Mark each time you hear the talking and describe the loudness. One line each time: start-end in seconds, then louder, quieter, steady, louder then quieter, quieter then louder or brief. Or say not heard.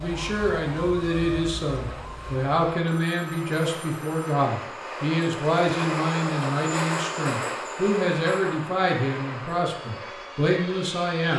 0.0-11.3 steady.